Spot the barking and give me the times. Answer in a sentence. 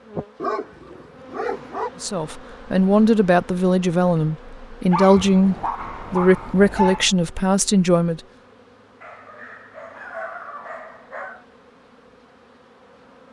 The barking can be heard from 0.4 to 1.9 s, from 4.9 to 7.2 s and from 9.0 to 11.4 s.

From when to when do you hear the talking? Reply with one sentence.
The talking can be heard from 2.0 to 8.2 s.